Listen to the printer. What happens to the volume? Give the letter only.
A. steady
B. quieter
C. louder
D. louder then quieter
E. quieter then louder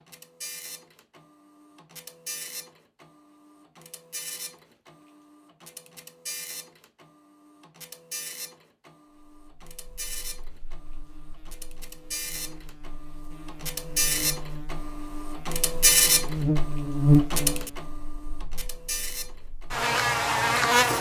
C.